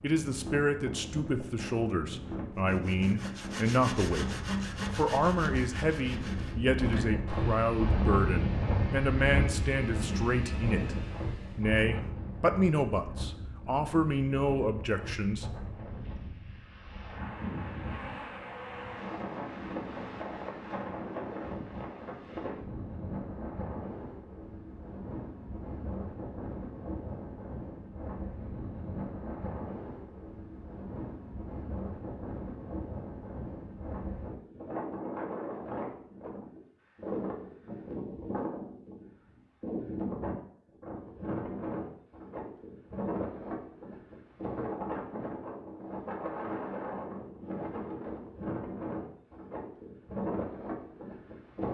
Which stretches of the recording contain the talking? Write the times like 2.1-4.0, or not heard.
0.0-15.4.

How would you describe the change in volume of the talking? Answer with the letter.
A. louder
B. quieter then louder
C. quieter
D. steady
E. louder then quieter
D.